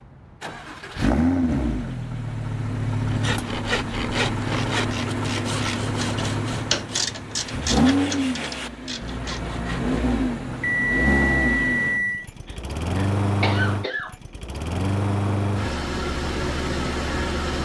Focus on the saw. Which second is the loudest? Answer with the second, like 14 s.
4 s.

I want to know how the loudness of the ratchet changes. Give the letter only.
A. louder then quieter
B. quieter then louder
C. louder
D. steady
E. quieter
A.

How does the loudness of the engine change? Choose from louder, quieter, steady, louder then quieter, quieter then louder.
steady.